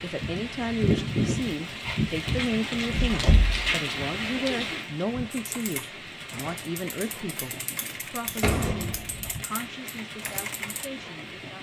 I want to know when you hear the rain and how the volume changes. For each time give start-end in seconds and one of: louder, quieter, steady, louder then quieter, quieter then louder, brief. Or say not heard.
0.0-11.5 quieter.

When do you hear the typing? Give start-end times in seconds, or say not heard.
5.3-10.9.